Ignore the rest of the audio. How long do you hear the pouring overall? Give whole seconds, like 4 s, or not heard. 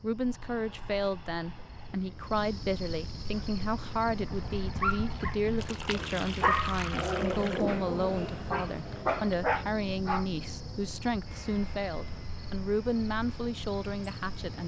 2 s.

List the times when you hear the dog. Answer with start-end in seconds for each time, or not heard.
3.2-10.3.